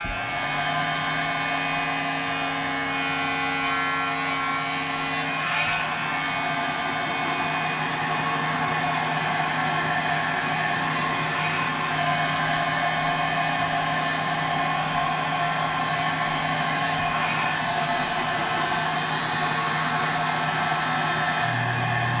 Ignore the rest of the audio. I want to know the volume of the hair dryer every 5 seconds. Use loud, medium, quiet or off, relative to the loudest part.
medium, loud, loud, loud, loud.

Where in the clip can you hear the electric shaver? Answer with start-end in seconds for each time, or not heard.
0.0-22.1.